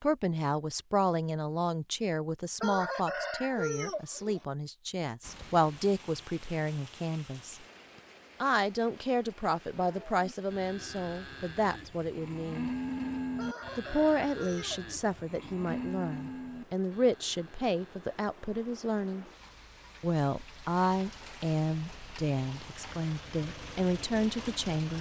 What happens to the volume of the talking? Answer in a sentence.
The volume of the talking stays about the same.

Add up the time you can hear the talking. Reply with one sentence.
You can hear the talking for 22 seconds altogether.